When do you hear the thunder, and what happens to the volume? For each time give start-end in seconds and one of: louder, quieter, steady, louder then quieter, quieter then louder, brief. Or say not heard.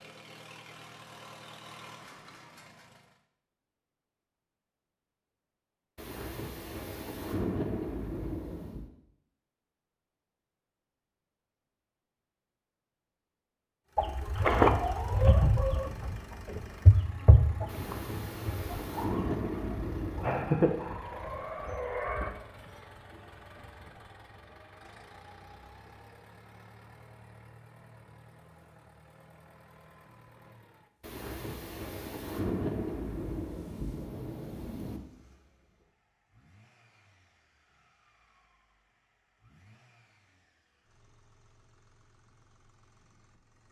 6.0-8.9 brief
17.6-20.6 brief
31.0-35.0 louder then quieter.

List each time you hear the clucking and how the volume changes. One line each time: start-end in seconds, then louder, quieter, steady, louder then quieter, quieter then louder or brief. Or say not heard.
13.9-22.3 quieter then louder.